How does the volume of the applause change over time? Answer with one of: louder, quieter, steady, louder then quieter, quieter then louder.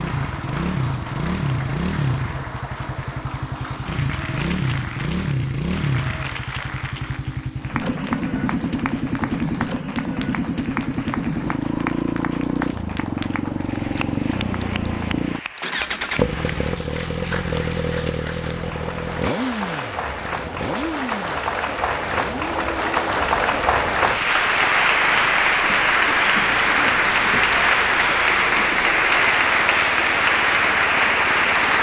louder.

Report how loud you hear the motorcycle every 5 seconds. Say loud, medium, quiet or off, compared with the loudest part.
loud, loud, loud, loud, medium, quiet, quiet.